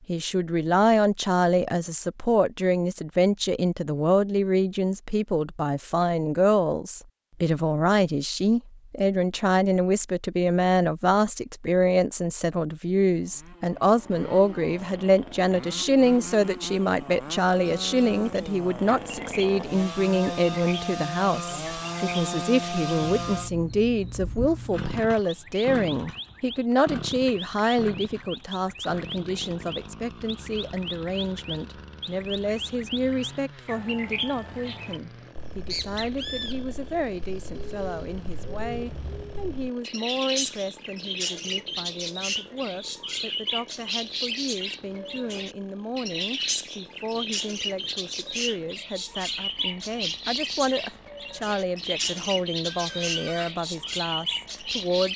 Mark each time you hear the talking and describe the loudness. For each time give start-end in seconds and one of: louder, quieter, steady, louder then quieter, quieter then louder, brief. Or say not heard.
0.1-55.1 quieter.